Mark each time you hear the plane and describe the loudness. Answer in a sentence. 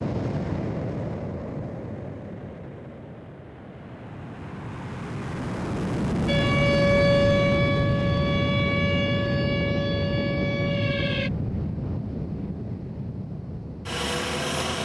The plane can be heard from 0.0 to 14.8 s, getting louder then quieter.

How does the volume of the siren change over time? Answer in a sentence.
The loudness of the siren goes down.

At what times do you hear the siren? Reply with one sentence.
You can hear the siren from 6.2 to 11.3 s.